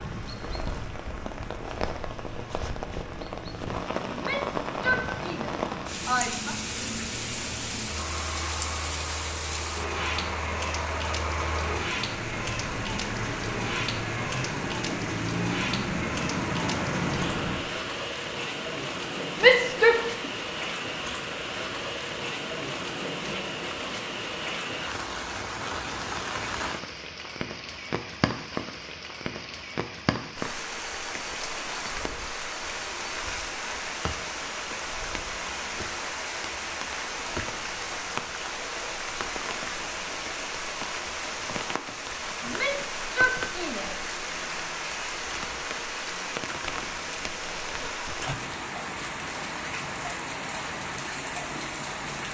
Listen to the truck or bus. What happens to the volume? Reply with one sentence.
The volume of the truck or bus goes up.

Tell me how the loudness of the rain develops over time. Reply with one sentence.
The loudness of the rain stays about the same.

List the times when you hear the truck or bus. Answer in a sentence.
You can hear the truck or bus from 0.0 to 17.6 s.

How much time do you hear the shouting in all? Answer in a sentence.
You can hear the shouting for 5 seconds altogether.